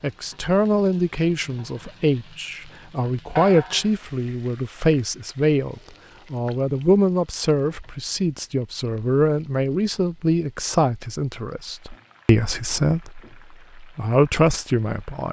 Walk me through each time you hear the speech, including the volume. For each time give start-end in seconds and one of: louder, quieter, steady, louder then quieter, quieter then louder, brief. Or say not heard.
0.0-15.2 steady.